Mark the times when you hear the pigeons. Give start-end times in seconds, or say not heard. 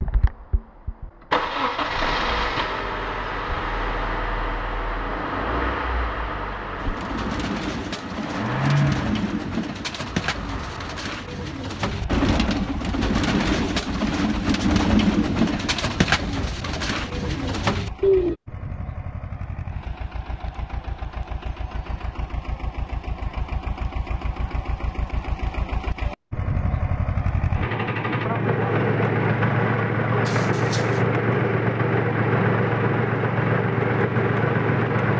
6.8-18.4.